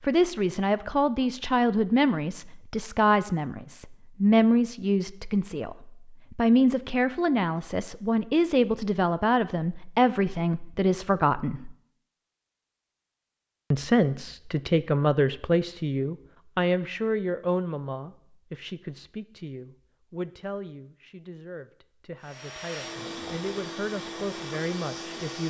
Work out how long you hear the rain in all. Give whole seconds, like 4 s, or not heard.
not heard.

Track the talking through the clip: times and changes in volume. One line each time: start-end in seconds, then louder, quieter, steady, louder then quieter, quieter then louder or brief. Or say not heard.
0.0-11.8 steady
13.7-25.4 quieter then louder.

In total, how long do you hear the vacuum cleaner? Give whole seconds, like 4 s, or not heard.
3 s.